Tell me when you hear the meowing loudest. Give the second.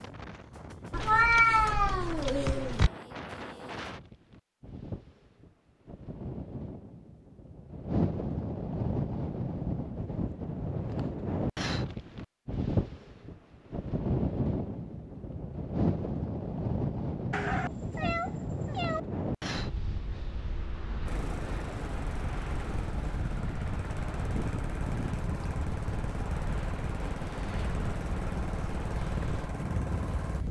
1 s.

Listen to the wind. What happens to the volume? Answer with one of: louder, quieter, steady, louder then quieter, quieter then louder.
louder then quieter.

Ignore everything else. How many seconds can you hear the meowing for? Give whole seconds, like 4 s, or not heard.
4 s.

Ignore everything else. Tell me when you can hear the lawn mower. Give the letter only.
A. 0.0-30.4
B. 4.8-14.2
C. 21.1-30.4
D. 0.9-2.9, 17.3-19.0
C.